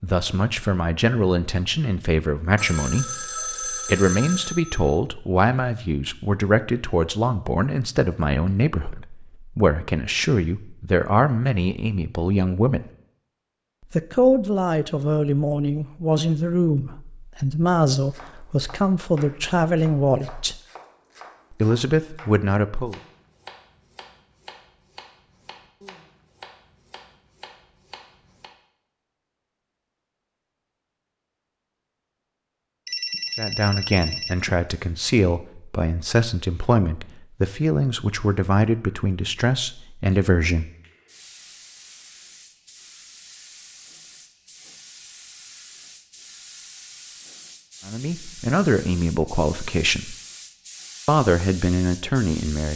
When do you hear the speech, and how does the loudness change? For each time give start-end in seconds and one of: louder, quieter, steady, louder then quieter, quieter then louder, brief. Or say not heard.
0.0-12.8 steady
13.9-20.6 steady
21.6-22.9 brief
33.4-40.7 steady
47.9-50.1 brief
51.0-52.7 brief.